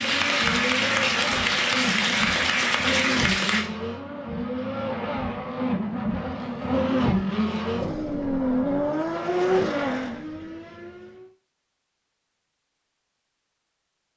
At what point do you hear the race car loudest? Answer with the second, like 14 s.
9 s.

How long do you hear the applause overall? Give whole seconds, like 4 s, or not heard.
4 s.